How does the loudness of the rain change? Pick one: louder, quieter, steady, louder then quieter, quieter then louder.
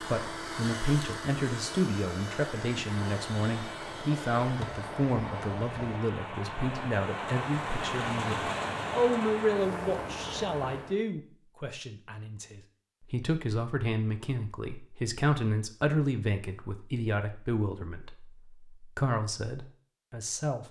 louder.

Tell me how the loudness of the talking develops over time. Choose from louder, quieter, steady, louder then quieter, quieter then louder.
steady.